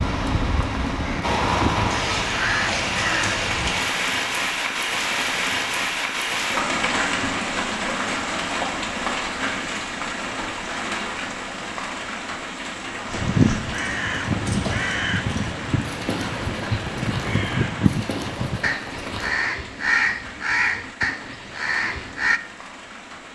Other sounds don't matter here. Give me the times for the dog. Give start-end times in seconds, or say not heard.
not heard.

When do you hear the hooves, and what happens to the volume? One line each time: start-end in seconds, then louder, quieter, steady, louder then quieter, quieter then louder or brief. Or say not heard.
13.1-19.3 steady.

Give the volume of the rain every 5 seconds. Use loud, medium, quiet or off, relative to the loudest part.
loud, loud, medium, quiet, quiet.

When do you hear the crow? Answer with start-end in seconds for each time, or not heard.
0.0-3.5, 13.1-22.4.